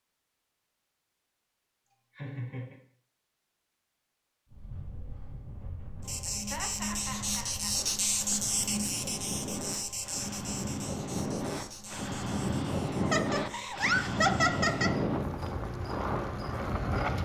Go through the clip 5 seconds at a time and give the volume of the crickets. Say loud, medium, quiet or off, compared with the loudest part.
off, loud, medium, medium.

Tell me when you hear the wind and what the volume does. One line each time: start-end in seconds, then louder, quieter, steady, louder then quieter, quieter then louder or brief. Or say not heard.
4.5-17.2 louder.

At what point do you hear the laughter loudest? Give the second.
14 s.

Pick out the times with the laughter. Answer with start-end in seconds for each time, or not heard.
1.9-2.8, 6.2-7.8, 13.0-14.9.